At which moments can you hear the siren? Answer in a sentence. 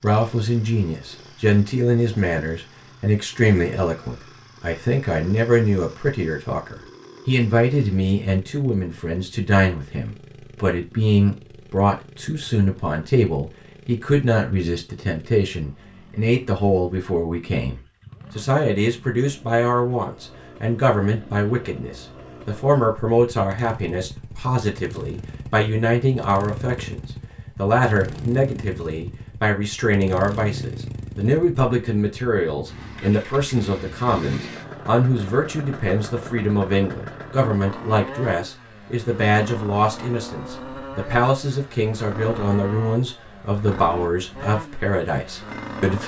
You can't hear the siren here.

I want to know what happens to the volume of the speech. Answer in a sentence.
The loudness of the speech stays about the same.